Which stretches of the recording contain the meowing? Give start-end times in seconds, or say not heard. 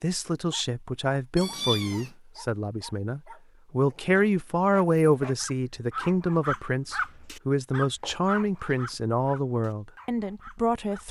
1.4-2.1, 8.0-8.8.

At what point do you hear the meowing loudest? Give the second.
2 s.